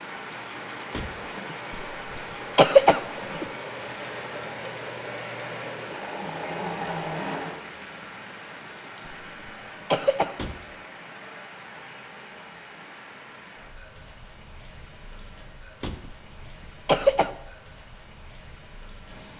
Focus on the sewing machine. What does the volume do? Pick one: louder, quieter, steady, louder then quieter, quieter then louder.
louder.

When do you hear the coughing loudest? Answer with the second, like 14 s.
3 s.